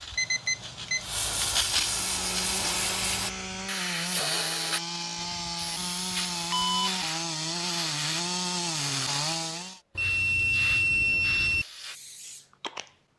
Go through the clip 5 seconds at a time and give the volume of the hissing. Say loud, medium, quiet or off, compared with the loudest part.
loud, medium, medium.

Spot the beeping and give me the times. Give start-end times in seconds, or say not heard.
0.1-1.5, 5.2-7.0, 9.9-11.7.